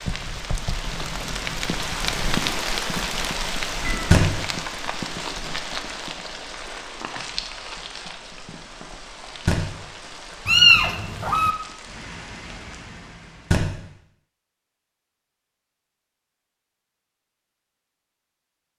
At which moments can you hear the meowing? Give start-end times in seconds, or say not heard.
3.8-4.2, 10.4-11.6.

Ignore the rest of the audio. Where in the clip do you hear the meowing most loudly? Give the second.
11 s.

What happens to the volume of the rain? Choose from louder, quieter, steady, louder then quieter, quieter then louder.
quieter.